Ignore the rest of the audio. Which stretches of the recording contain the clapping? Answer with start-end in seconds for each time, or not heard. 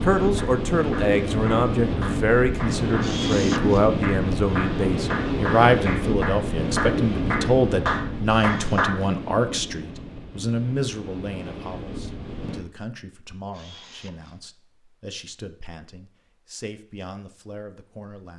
0.3-8.9.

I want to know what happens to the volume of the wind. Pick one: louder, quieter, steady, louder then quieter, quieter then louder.
quieter.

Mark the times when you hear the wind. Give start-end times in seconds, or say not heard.
0.0-12.6.